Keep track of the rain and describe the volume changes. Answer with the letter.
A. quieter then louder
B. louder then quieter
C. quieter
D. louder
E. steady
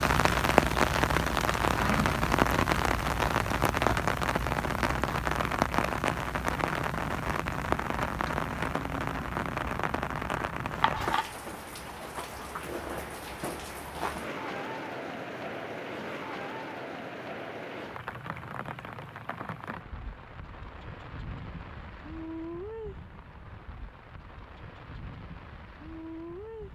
C.